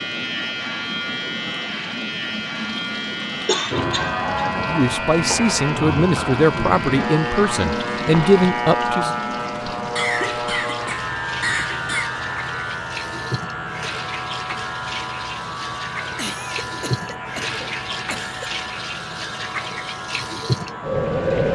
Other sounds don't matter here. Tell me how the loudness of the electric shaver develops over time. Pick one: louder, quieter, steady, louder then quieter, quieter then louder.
quieter.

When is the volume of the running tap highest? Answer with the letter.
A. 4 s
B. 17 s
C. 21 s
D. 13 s
C.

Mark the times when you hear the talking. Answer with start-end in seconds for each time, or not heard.
4.5-9.1.